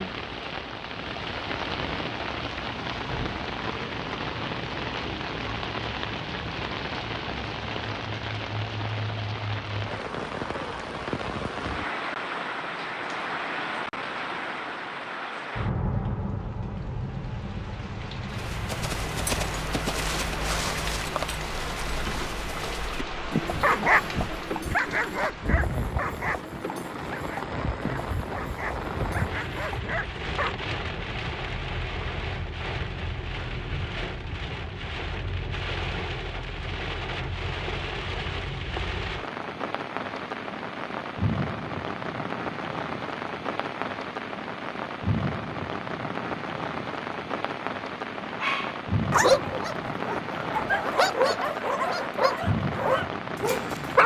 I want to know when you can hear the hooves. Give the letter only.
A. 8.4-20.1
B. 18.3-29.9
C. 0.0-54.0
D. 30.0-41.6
B.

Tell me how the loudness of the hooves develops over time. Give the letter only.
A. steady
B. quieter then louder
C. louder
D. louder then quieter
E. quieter
E.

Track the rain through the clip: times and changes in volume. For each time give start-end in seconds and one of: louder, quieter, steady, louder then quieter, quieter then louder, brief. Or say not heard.
0.0-54.0 steady.